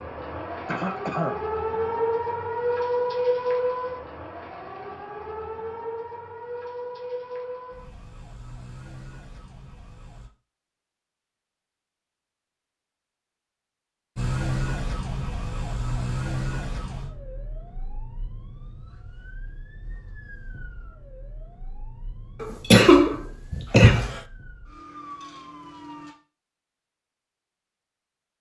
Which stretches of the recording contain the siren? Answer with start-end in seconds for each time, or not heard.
0.0-10.3, 14.2-26.1.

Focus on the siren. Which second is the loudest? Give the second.
3 s.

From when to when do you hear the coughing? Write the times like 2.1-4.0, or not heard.
0.7-1.4, 22.4-24.2.